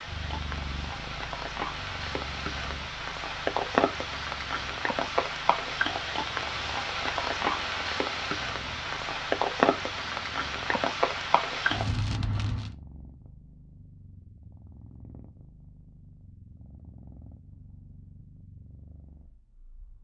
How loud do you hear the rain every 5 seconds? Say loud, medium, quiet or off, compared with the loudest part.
loud, loud, loud, off.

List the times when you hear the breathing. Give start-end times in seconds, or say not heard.
not heard.